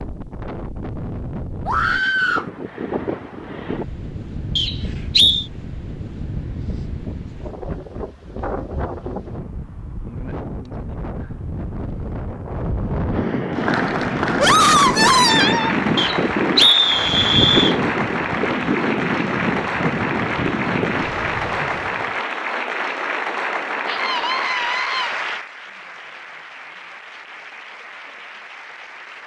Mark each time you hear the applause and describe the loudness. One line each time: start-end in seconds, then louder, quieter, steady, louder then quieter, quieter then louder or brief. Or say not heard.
13.5-29.2 quieter.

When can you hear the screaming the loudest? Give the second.
15 s.